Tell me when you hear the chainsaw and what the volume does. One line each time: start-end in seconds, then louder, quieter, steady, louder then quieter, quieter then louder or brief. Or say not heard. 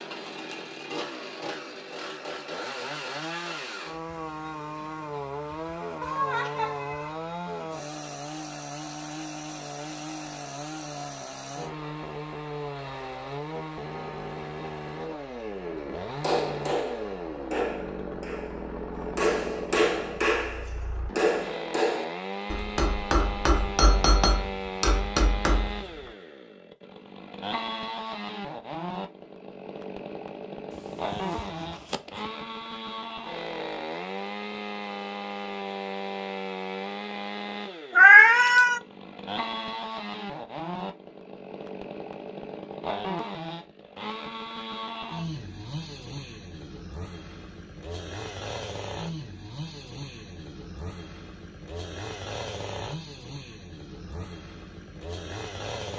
0.0-55.9 steady.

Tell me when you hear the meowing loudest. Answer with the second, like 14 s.
38 s.